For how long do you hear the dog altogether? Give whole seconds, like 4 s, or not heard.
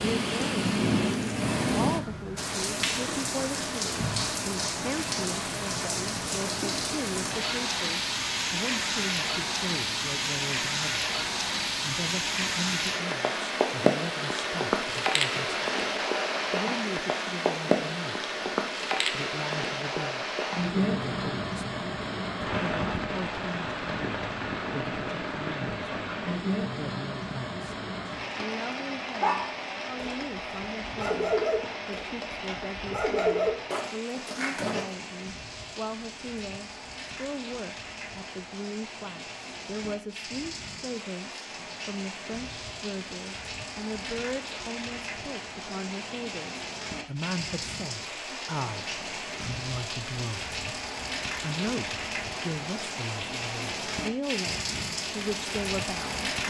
6 s.